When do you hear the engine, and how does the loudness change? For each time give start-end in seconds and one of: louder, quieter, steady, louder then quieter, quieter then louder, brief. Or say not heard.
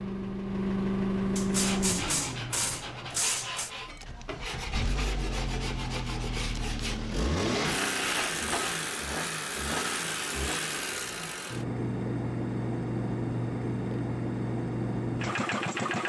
0.0-16.0 quieter then louder.